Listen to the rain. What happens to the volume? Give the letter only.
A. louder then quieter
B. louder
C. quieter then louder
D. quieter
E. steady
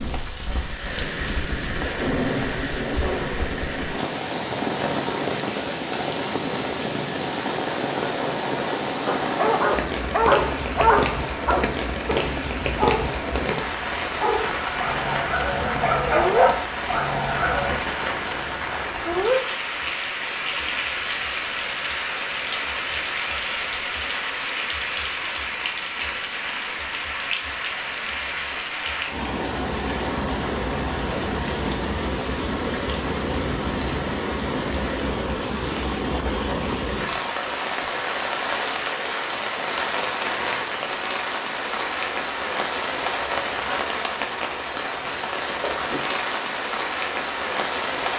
E.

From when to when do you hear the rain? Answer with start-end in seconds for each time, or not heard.
0.0-48.1.